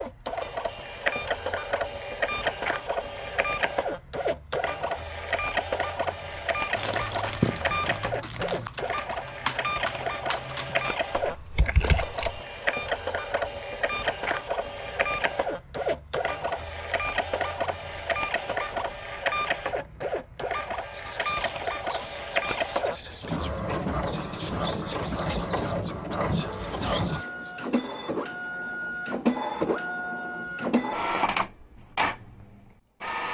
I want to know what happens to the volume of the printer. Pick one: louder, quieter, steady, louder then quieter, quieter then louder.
steady.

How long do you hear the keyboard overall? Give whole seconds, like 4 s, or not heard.
6 s.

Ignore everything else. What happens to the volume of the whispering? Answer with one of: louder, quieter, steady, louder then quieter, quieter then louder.
steady.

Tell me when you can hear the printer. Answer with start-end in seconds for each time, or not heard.
0.0-33.3.